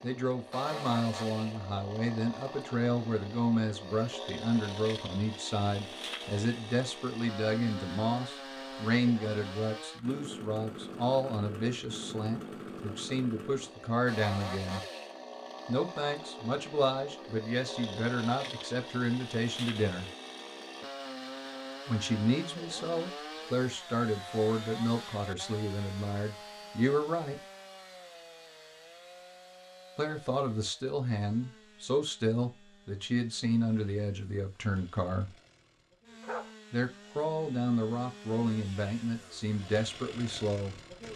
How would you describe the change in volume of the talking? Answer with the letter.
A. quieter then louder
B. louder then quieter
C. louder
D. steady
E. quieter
D.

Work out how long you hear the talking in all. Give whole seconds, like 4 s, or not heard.
34 s.